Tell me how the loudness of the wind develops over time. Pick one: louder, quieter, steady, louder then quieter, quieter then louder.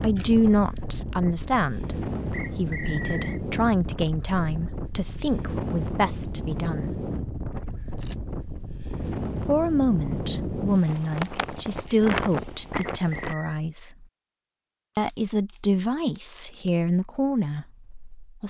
steady.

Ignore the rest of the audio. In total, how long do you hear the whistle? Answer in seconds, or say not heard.
2 s.